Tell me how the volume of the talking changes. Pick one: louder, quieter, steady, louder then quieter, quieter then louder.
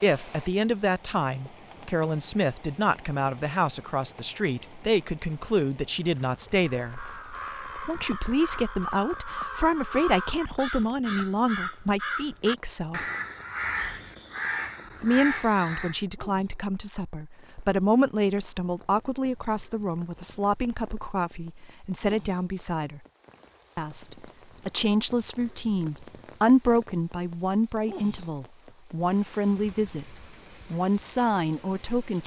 steady.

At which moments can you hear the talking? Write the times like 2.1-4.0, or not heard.
0.0-7.0, 7.8-13.1, 15.0-23.0, 23.8-32.2.